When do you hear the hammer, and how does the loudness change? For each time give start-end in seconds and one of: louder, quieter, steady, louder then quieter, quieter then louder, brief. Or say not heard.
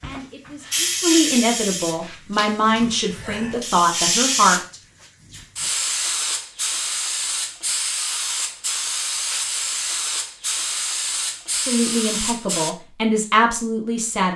not heard.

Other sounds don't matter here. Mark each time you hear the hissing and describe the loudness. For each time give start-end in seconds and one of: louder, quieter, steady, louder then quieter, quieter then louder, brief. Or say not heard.
0.0-12.8 steady.